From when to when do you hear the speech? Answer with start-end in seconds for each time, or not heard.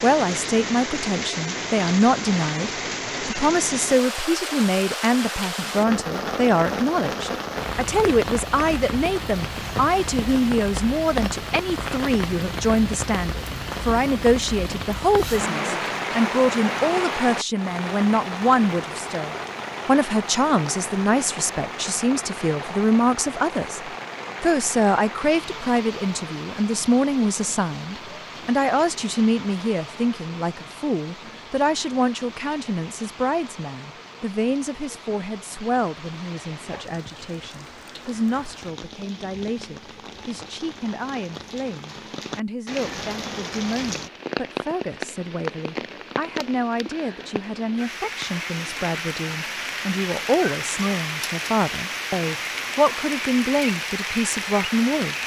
0.0-55.2.